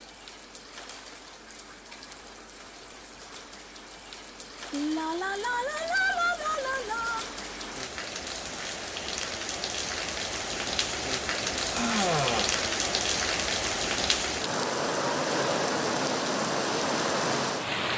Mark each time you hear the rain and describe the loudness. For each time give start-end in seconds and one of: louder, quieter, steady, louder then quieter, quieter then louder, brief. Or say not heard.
0.0-17.9 louder.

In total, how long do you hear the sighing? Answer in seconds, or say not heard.
4 s.